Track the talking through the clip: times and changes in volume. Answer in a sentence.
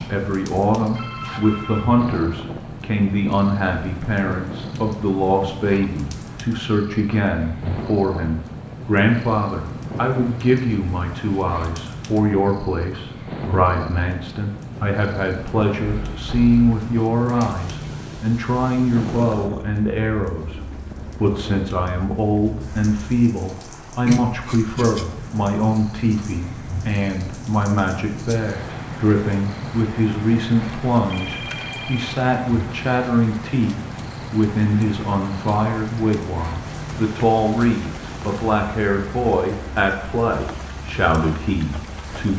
The talking can be heard from 0.0 to 42.3 s, at a steady volume.